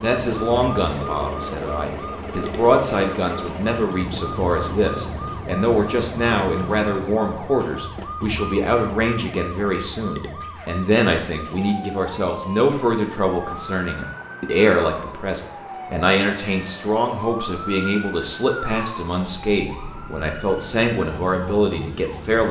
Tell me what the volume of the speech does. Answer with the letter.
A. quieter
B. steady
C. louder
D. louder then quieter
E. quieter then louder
B.